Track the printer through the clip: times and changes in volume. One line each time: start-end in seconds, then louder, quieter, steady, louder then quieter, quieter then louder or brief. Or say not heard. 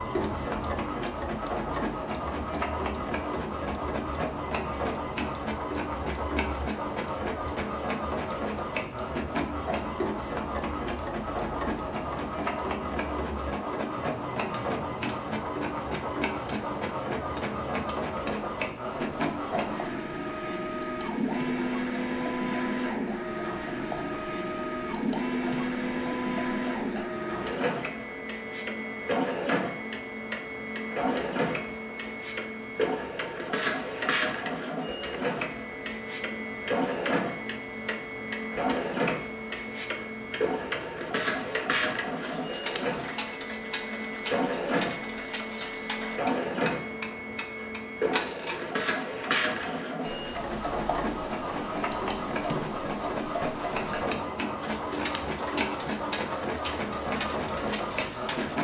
0.0-58.5 steady.